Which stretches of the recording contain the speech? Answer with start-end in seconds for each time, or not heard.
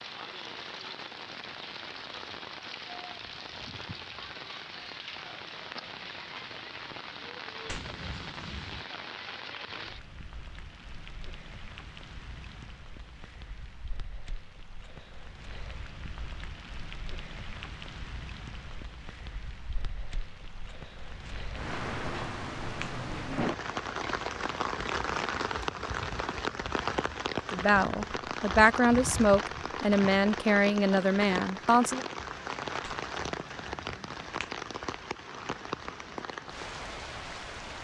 27.5-32.0.